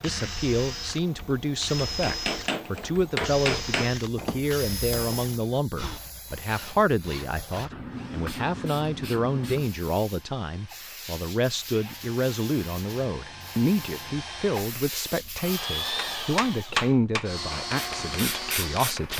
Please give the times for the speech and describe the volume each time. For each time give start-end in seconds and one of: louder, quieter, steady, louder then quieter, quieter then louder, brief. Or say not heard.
0.0-19.1 steady.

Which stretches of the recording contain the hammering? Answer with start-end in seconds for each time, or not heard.
1.8-5.5, 15.3-19.1.